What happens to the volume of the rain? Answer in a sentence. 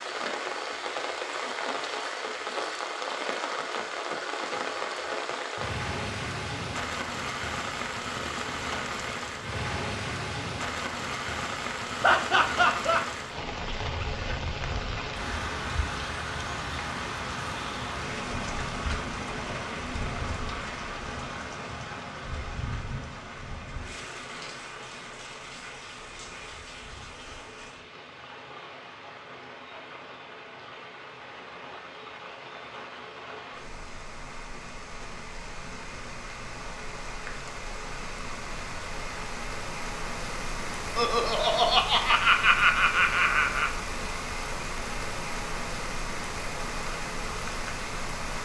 The volume of the rain goes down, then up.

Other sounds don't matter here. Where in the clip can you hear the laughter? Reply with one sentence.
You can hear the laughter from 12.0 to 13.0 s and from 41.0 to 43.7 s.